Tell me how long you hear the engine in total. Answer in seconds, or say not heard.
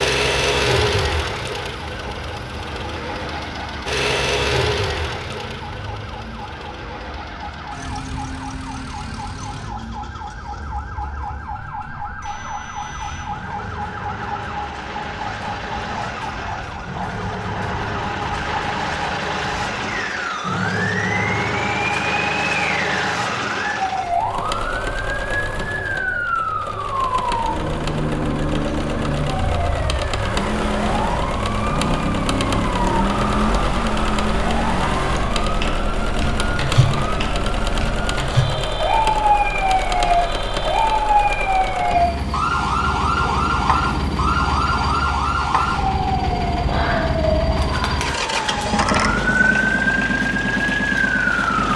52 s.